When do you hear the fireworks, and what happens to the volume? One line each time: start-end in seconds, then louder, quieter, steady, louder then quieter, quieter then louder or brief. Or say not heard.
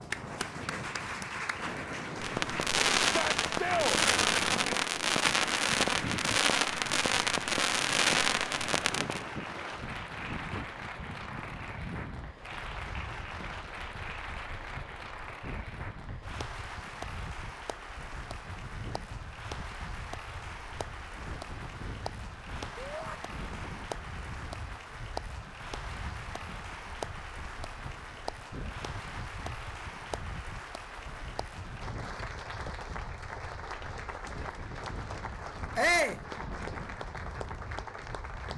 2.1-9.2 steady.